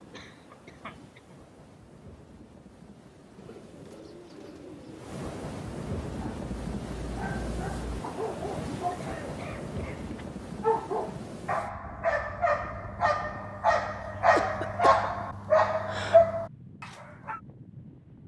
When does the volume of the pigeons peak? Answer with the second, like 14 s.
5 s.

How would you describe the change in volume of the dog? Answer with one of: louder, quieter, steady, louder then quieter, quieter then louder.
louder.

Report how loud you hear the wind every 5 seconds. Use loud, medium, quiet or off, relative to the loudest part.
quiet, loud, medium, quiet.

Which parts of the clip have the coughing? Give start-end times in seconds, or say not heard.
0.1-1.4, 8.8-10.1, 14.0-14.8.